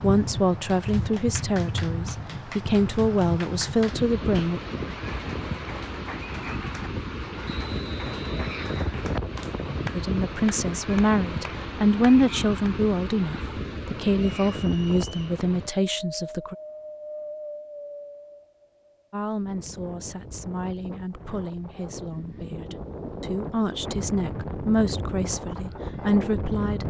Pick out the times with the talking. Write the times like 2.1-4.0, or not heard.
0.0-4.6, 9.9-16.6, 19.1-26.8.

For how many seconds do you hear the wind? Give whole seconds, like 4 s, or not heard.
27 s.